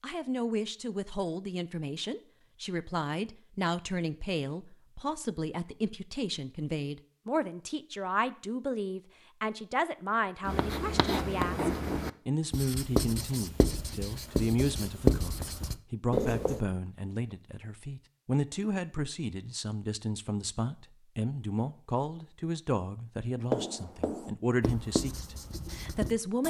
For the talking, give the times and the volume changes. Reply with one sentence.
The talking can be heard from 0.0 to 26.4 s, at a steady volume.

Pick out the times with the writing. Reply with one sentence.
The writing can be heard from 10.4 to 16.6 s and from 23.5 to 26.4 s.